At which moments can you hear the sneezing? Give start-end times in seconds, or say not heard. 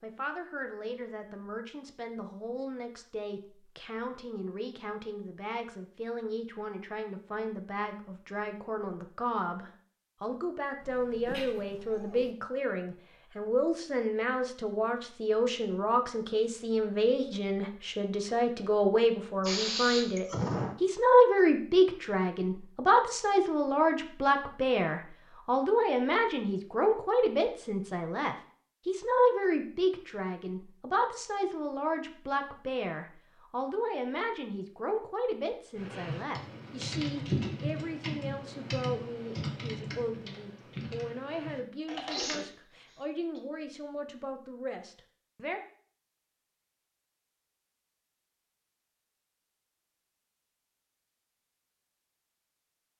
10.8-12.3, 19.4-20.8, 42.1-43.4.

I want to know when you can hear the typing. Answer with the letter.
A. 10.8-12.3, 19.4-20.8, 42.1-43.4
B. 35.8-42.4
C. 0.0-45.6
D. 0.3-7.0
B.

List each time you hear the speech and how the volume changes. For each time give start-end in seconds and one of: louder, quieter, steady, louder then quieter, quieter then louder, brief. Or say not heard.
0.0-45.6 louder then quieter.